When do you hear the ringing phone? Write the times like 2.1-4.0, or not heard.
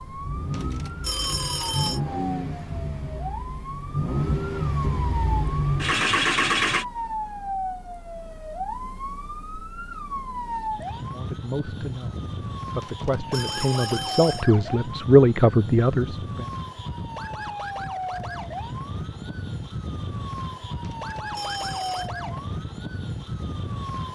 0.5-2.0, 12.8-14.4, 20.8-22.1.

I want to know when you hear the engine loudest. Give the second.
6 s.